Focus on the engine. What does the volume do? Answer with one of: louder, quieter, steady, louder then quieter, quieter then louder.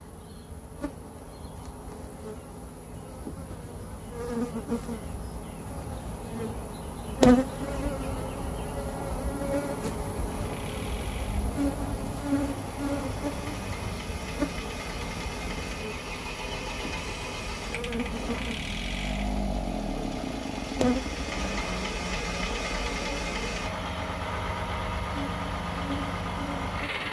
louder.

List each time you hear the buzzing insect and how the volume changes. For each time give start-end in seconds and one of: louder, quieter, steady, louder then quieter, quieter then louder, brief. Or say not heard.
0.0-27.0 louder then quieter.